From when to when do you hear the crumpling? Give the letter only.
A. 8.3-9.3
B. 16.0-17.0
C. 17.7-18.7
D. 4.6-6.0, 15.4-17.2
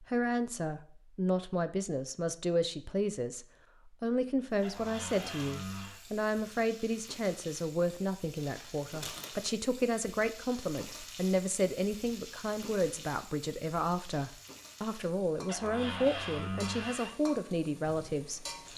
A.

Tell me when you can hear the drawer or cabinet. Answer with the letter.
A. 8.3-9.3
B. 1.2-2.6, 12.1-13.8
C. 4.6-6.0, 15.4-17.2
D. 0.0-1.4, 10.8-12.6
C.